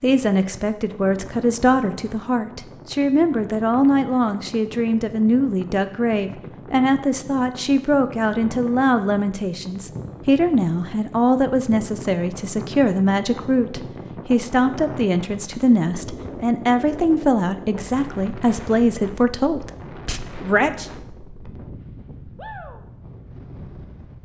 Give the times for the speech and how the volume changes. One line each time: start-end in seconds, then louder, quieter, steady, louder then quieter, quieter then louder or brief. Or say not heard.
0.0-20.9 steady.